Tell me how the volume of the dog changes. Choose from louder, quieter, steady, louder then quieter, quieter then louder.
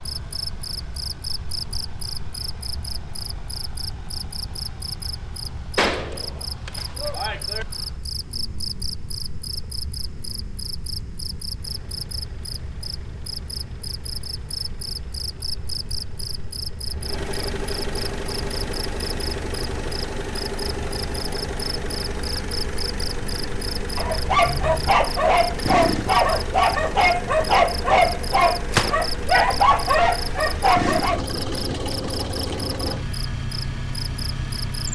steady.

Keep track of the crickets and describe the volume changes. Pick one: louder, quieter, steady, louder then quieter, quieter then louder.
steady.